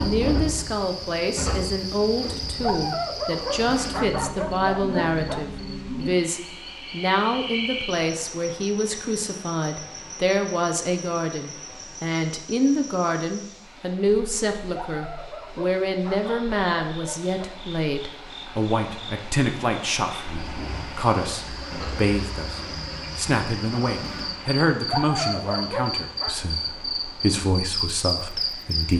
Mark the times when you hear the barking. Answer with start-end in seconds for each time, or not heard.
2.6-5.5, 14.7-17.5, 24.9-26.4.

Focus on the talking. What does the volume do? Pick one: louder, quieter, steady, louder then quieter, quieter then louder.
steady.